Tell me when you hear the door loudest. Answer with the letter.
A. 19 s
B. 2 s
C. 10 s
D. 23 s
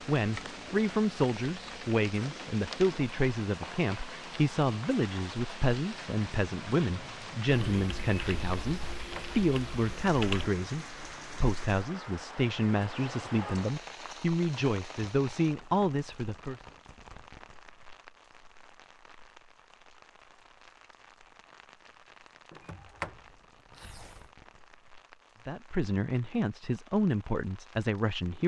D.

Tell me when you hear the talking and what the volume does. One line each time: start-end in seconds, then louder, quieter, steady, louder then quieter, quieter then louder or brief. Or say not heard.
0.1-16.6 steady
25.4-28.4 brief.